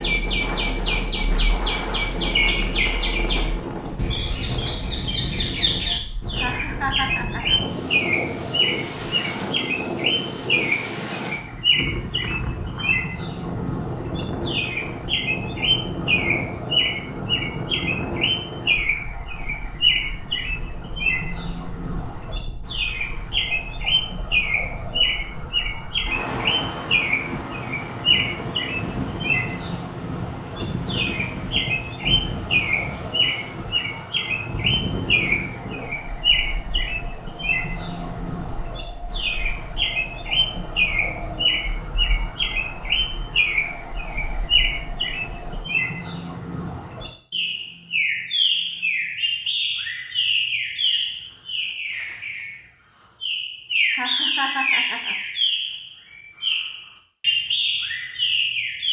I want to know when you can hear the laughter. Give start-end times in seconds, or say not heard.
6.3-7.6, 53.9-55.1.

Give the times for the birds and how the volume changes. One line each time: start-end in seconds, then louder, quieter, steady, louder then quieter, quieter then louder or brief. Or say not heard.
0.0-58.8 steady.